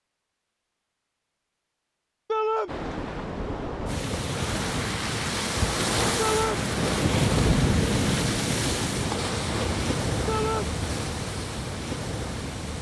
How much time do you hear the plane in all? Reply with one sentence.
You can't hear the plane here.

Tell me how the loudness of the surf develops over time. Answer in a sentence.
The loudness of the surf goes up, then down.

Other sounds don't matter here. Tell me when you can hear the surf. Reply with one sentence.
You can hear the surf from 2.6 to 12.7 s.